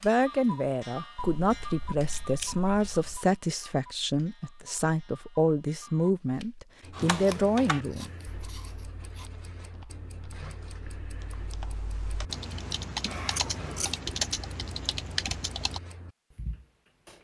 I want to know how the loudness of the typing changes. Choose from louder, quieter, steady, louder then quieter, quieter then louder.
quieter then louder.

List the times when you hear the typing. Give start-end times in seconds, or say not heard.
6.9-15.8.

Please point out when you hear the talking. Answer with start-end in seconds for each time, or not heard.
0.0-8.1.